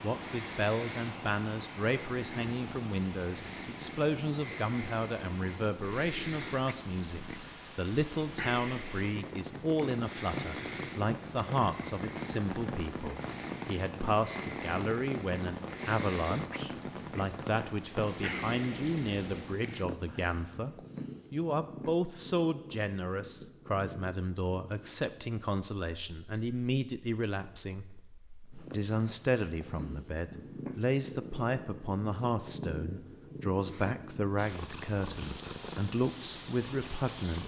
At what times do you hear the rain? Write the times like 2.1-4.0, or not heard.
0.0-19.6.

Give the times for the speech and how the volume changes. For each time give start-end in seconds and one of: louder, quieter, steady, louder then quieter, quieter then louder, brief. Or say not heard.
0.0-27.9 steady
28.7-37.4 steady.